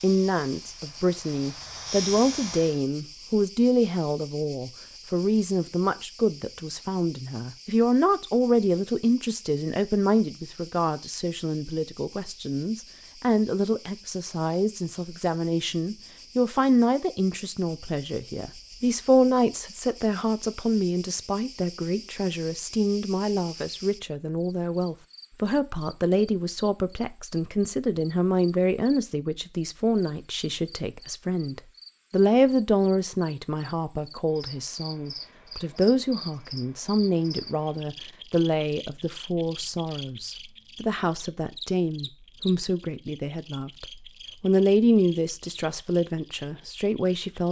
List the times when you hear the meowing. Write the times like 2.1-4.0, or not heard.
not heard.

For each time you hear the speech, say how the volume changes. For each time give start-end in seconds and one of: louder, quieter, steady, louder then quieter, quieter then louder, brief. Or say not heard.
0.0-47.4 steady.